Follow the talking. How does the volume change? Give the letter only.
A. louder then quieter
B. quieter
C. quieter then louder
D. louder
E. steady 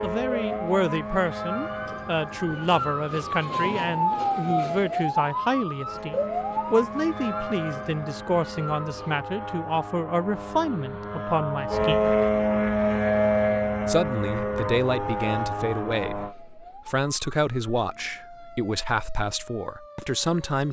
E.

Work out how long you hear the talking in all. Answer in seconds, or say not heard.
19 s.